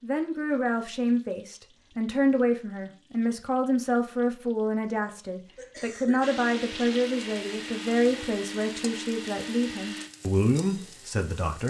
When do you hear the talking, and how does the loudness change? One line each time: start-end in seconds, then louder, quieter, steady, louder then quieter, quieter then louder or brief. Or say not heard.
0.0-11.6 steady.